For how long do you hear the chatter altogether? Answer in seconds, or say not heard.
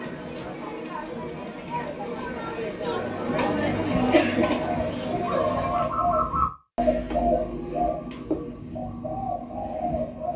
6 s.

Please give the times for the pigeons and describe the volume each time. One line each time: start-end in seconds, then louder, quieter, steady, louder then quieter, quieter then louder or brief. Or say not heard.
3.4-10.3 louder then quieter.